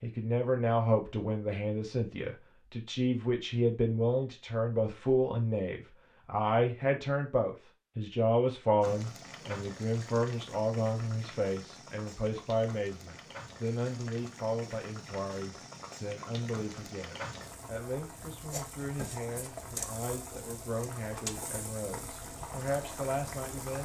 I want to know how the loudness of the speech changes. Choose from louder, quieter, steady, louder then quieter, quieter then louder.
quieter.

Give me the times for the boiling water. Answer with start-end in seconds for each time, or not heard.
8.8-23.7.